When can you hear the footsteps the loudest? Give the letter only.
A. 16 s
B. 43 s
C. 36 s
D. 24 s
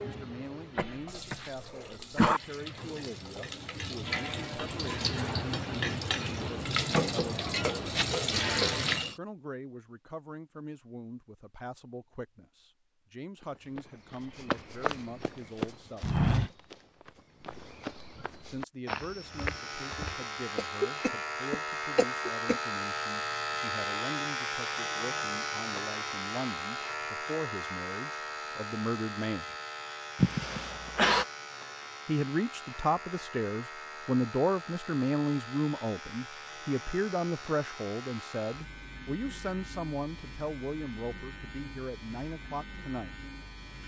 A.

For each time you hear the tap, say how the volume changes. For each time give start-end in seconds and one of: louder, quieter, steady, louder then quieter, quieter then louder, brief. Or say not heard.
0.0-9.2 louder.